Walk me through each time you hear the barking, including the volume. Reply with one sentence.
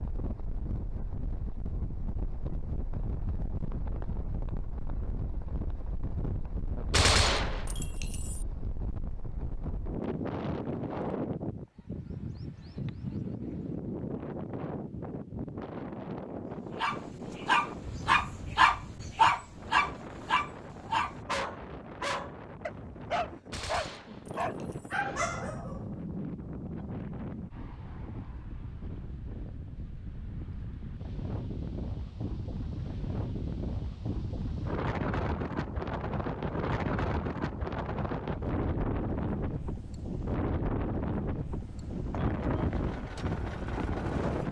You can hear the barking from 16.8 to 25.9 s, getting quieter.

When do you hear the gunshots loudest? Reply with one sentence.
The volume of the gunshots peaks at 7 seconds.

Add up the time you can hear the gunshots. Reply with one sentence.
The gunshots can be heard for 3 seconds in total.